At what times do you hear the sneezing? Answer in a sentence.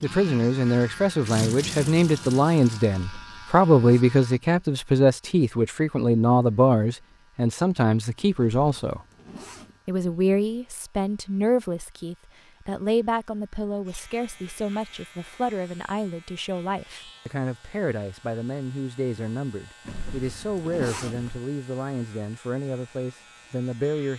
You can't hear the sneezing here.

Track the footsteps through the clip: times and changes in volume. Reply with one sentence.
The footsteps can't be heard in this clip.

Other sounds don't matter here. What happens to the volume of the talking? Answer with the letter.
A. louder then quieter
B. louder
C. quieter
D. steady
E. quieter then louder
C.